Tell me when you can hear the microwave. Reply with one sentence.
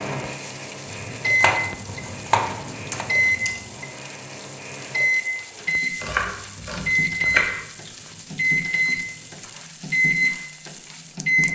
The microwave can be heard from 0.0 to 11.5 s.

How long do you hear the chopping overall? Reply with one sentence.
You can hear the chopping for 3 seconds altogether.